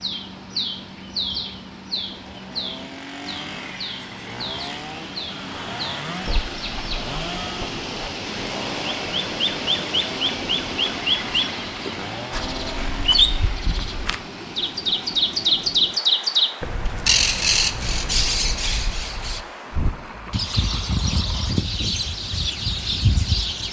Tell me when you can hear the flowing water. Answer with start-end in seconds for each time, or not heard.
0.0-23.6.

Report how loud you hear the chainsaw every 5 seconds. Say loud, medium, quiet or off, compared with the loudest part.
loud, loud, loud, off, off.